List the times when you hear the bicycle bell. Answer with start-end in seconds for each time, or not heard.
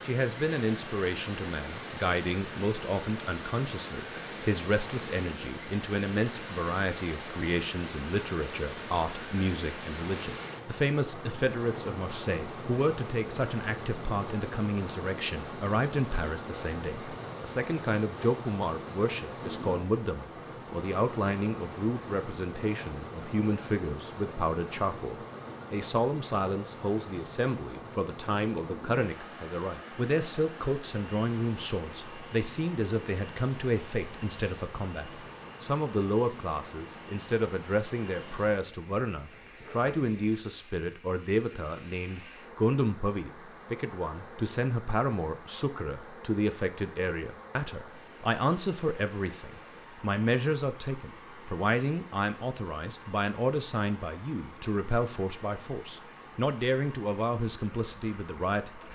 not heard.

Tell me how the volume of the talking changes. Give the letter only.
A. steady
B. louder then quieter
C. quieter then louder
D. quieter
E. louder
A.